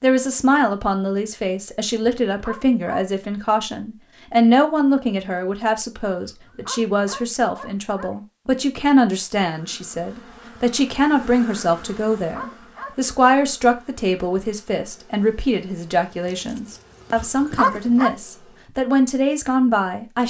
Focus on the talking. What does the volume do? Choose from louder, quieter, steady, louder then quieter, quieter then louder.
steady.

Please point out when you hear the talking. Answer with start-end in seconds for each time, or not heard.
0.0-20.2.